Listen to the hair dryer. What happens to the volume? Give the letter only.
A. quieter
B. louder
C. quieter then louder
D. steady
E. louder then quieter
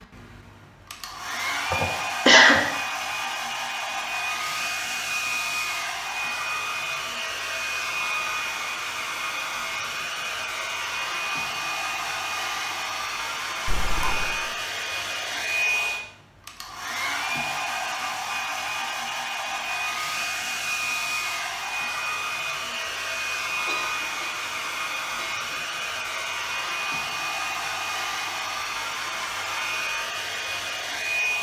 D.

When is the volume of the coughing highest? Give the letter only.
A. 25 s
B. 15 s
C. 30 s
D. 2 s
D.